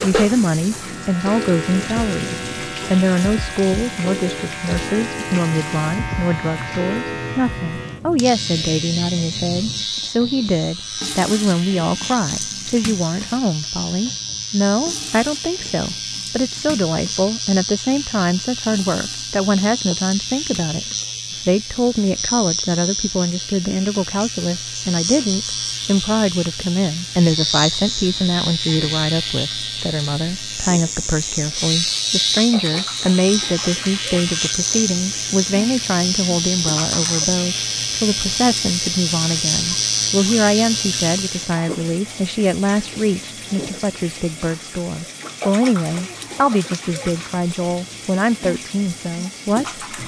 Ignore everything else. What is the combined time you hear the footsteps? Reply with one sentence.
The footsteps can't be heard in this clip.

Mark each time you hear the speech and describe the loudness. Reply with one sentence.
The speech can be heard from 0.0 to 49.9 s, at a steady volume.